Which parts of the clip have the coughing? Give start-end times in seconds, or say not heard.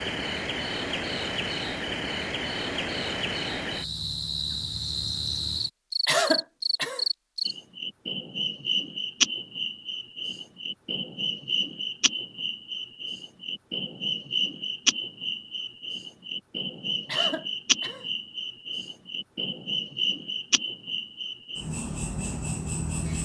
6.0-7.0, 17.1-18.1.